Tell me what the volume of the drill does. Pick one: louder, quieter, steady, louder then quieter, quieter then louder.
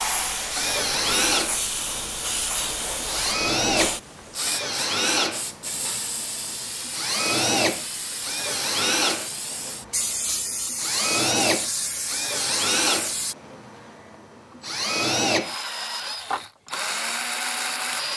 steady.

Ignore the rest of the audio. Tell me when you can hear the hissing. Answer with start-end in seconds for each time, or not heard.
0.0-13.3.